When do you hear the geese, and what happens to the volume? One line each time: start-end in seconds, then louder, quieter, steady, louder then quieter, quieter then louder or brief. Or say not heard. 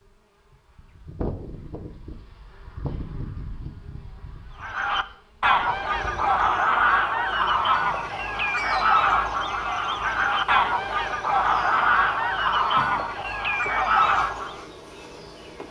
4.6-14.7 steady.